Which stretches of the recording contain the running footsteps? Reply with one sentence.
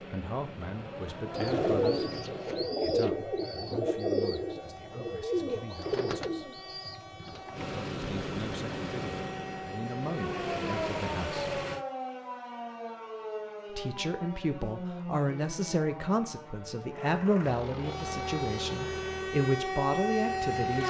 The running footsteps can't be heard in this clip.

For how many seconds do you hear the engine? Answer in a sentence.
The engine can be heard for 11 seconds in total.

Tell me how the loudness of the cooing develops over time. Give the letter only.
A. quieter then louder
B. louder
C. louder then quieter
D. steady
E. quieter
E.